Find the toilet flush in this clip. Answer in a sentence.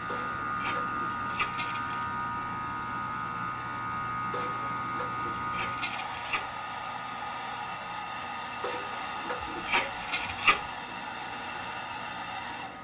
The toilet flush can be heard from 0.1 to 2.0 s, from 4.2 to 6.4 s and from 8.6 to 10.4 s.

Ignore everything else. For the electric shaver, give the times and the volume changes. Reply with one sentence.
The electric shaver can be heard from 0.0 to 12.7 s, getting quieter.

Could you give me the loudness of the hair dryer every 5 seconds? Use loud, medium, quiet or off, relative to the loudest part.
medium, loud, loud.